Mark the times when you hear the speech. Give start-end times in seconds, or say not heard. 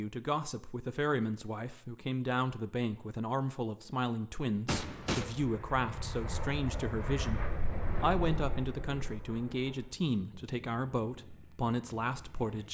0.0-12.6.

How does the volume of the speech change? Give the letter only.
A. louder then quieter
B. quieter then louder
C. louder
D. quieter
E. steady
E.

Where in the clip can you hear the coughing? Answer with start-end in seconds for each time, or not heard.
4.7-5.3.